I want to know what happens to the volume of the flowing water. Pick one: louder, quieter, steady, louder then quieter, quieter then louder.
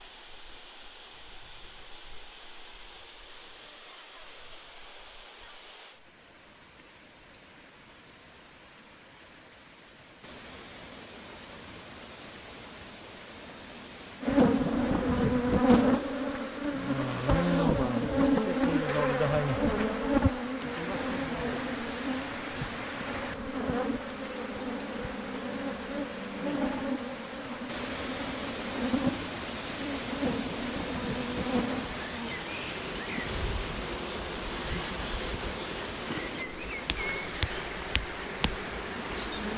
louder.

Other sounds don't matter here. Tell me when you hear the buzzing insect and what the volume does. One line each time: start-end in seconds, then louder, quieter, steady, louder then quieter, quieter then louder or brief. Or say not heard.
14.2-39.5 quieter.